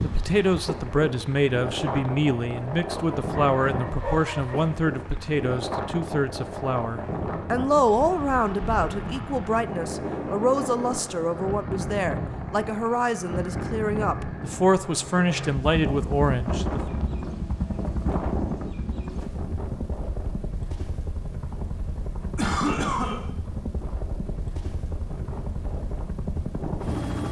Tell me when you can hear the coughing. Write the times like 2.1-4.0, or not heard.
22.4-23.2.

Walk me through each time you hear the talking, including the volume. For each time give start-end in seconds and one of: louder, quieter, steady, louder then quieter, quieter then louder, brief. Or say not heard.
0.0-16.8 steady.